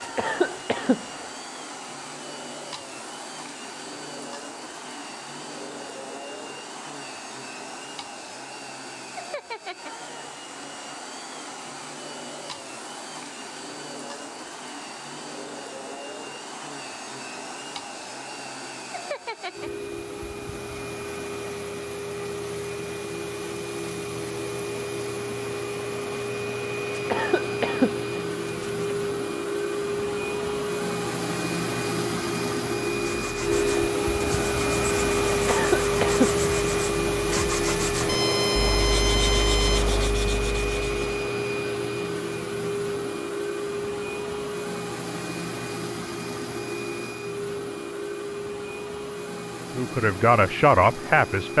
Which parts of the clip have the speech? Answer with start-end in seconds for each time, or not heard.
49.8-51.5.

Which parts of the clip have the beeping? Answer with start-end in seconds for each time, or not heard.
38.0-40.1.